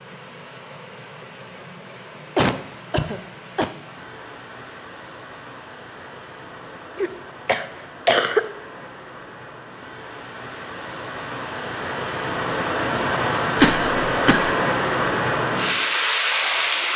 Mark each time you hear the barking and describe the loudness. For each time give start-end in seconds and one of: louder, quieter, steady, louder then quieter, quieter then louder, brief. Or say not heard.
not heard.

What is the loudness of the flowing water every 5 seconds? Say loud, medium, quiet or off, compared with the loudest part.
quiet, quiet, loud, loud.